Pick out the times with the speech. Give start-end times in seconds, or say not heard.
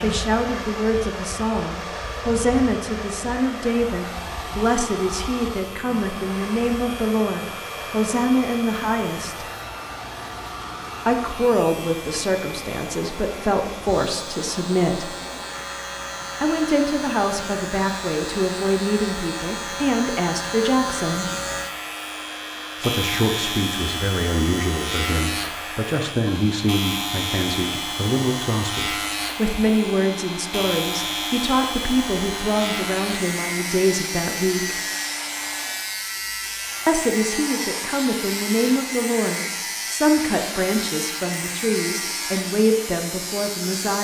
0.0-9.4, 11.1-15.1, 16.4-21.3, 22.8-34.8, 36.9-43.9.